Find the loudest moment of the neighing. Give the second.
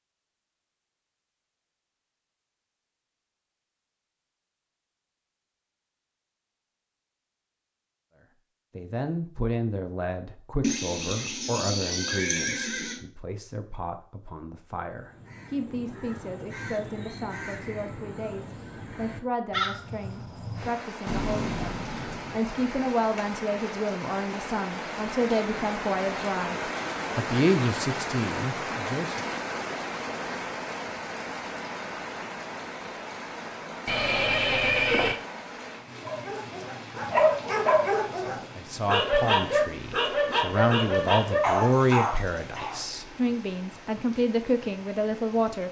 35 s.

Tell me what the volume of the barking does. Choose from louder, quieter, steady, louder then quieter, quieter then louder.
steady.